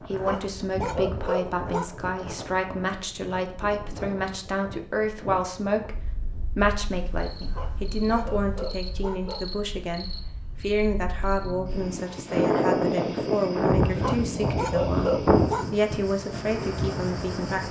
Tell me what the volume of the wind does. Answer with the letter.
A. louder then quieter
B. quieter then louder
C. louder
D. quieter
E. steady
B.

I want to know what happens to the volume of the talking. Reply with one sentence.
The loudness of the talking stays about the same.